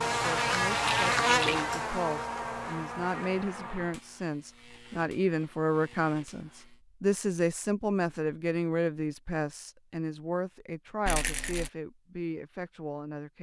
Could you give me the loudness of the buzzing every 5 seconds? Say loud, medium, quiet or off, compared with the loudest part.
loud, quiet, off.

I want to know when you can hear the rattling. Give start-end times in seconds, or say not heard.
0.7-1.6, 11.1-11.7.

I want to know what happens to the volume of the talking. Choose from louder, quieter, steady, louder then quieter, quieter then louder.
louder then quieter.